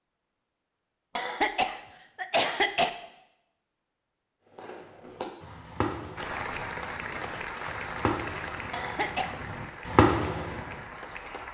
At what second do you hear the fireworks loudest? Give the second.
10 s.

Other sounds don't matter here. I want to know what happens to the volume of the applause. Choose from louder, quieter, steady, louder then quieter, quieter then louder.
quieter.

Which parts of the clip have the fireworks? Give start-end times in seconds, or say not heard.
4.5-10.8.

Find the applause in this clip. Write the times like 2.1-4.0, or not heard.
6.2-11.4.